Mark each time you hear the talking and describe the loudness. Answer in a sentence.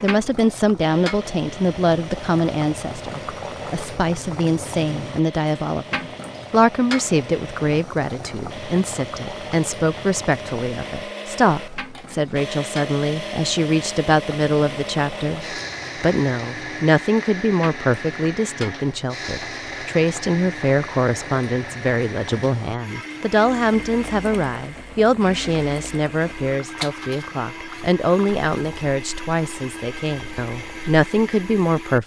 The talking can be heard from 0.0 to 32.0 s, at a steady volume.